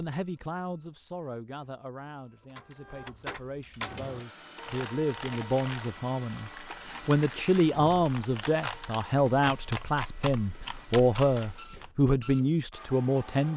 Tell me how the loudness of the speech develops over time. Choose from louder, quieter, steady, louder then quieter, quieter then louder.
louder.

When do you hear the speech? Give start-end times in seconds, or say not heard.
0.0-13.5.